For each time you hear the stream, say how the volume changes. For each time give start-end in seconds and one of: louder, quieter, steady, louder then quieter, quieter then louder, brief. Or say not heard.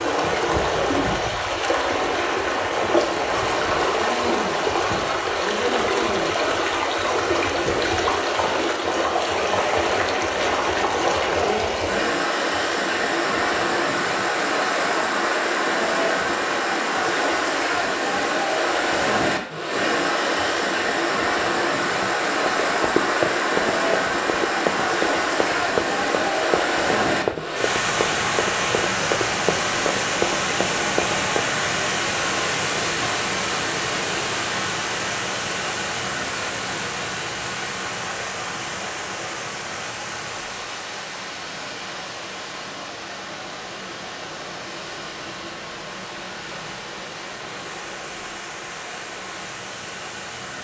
0.0-50.5 quieter.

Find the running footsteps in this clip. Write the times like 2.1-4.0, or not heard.
21.9-31.4.